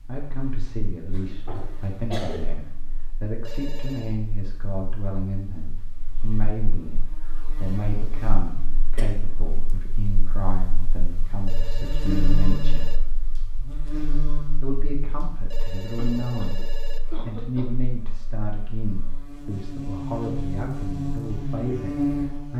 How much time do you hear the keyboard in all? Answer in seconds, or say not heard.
not heard.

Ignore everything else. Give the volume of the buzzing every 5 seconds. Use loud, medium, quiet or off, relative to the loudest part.
quiet, quiet, medium, quiet, loud.